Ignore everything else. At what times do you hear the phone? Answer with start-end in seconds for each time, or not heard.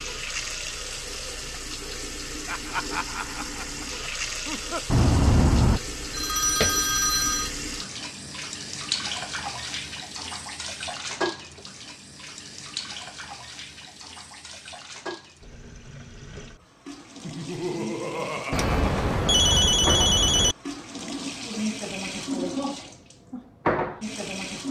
4.8-7.5, 18.5-20.6.